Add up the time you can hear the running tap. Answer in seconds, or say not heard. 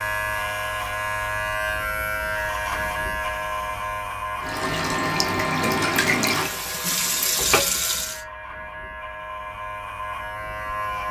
4 s.